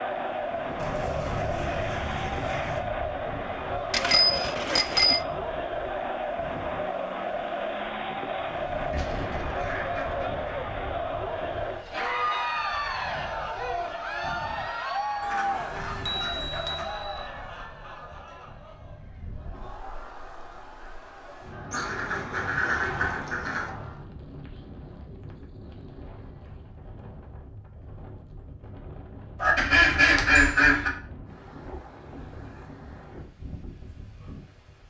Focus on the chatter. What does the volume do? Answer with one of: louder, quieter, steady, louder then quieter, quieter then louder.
quieter.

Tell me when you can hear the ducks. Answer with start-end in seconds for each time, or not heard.
0.8-2.8, 8.9-10.6, 15.2-16.9, 21.7-23.7, 29.4-30.9.